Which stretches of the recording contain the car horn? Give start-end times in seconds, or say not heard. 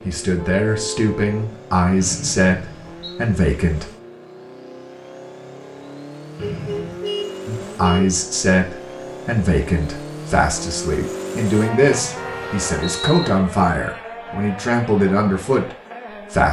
0.3-1.5, 6.4-8.2, 11.5-13.4.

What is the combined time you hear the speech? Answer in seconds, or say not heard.
13 s.